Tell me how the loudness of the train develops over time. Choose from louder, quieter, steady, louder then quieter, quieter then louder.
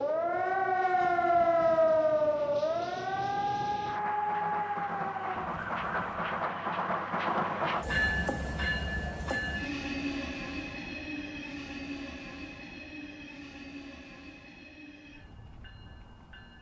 louder then quieter.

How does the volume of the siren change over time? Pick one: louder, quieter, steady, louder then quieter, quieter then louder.
quieter.